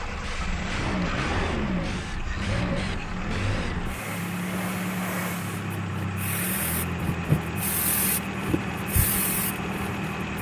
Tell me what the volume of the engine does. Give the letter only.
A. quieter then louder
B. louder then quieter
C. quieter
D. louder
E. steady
E.